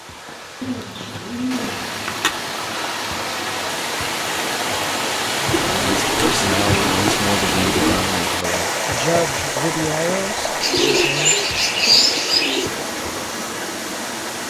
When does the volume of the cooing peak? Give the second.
12 s.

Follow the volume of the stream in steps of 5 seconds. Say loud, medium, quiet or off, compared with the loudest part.
medium, loud, medium.